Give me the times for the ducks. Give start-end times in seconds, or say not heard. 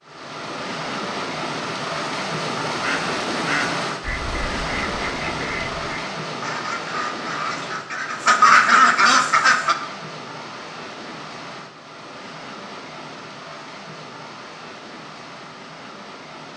2.8-9.8.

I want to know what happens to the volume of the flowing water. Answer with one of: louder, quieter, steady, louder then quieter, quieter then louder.
quieter.